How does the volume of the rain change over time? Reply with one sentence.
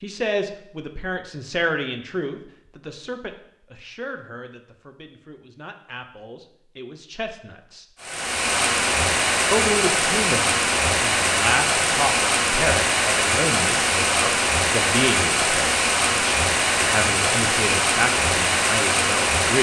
The volume of the rain stays about the same.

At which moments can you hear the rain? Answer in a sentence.
The rain can be heard from 8.0 to 19.5 s.